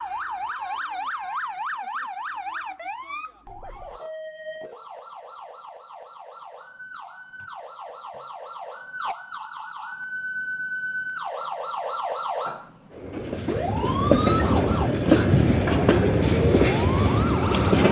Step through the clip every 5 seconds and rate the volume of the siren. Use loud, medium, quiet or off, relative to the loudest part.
loud, medium, loud, loud.